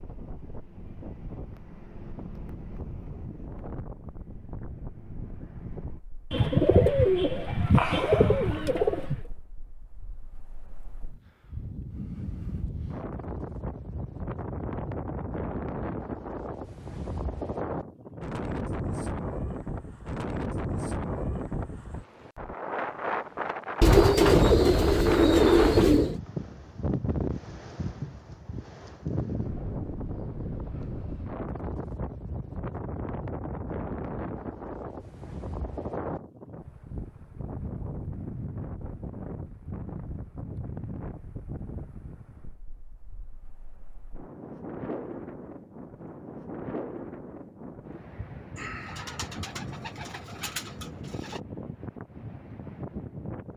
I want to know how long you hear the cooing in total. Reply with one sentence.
You can hear the cooing for 8 seconds altogether.